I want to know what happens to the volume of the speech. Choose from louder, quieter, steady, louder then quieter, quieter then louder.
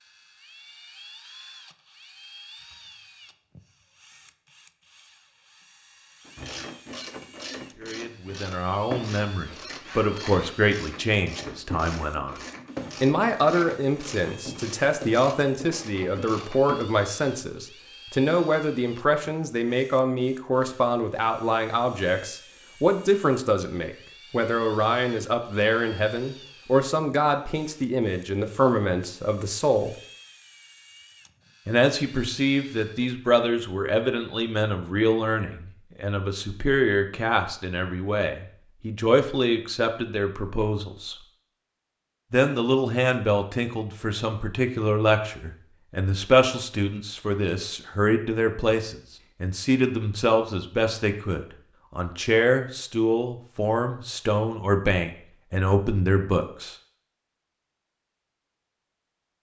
steady.